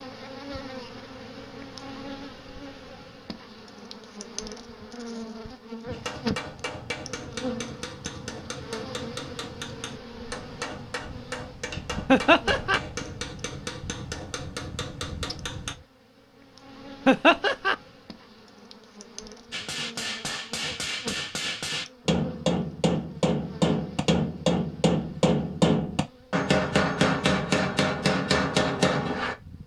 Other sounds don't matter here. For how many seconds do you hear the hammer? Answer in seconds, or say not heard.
20 s.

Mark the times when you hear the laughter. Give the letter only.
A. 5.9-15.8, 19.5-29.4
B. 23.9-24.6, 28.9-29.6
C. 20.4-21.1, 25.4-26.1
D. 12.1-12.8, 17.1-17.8
D.